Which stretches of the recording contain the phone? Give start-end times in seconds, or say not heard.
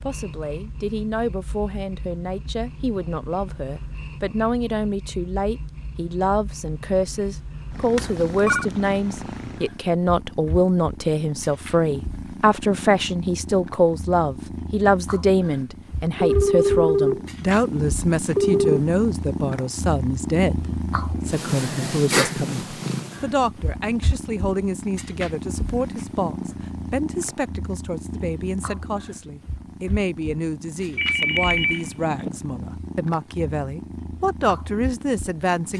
8.0-8.7, 16.2-18.8, 30.9-32.3.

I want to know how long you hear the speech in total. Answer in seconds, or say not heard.
36 s.